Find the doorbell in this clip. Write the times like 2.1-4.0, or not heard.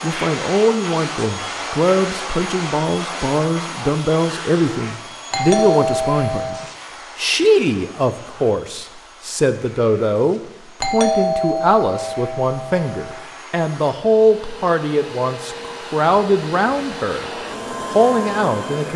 5.3-6.7, 10.8-13.2.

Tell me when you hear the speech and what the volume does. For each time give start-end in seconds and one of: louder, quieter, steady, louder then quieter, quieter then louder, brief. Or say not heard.
0.0-18.9 steady.